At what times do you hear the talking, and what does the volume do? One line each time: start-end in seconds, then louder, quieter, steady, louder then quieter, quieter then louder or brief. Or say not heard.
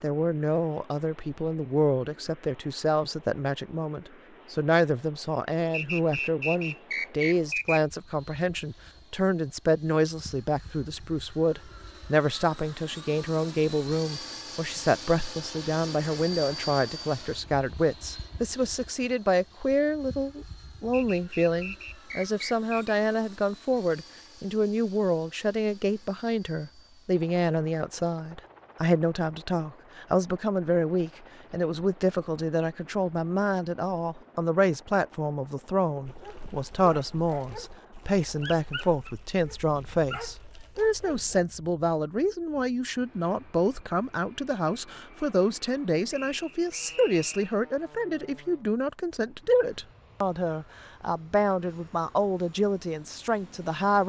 0.0-54.0 steady.